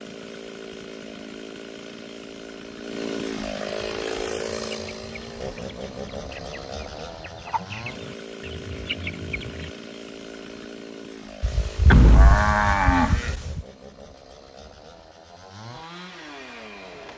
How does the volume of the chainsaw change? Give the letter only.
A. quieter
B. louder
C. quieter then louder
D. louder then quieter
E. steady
A.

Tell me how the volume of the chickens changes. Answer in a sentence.
The loudness of the chickens goes up.